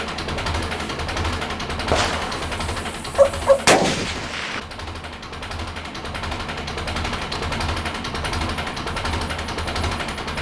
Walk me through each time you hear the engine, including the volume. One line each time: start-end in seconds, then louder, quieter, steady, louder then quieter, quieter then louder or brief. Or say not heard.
0.0-10.3 quieter then louder.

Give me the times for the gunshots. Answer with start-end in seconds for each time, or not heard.
1.9-4.6.